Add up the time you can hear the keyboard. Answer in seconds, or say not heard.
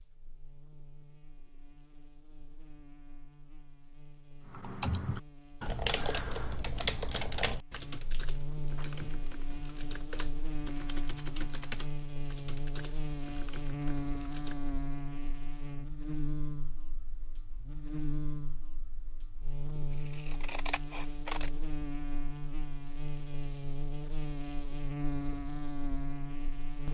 10 s.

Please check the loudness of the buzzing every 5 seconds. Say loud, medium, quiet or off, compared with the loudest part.
quiet, medium, loud, loud, loud, loud.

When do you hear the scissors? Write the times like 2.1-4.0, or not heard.
8.1-9.7, 19.9-21.5.